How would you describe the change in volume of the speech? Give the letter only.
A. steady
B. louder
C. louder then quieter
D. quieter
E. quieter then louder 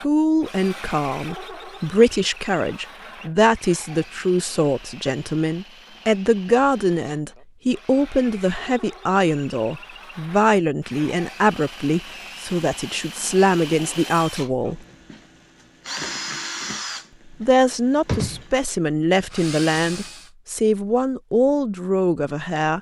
A.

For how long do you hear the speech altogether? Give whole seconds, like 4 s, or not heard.
20 s.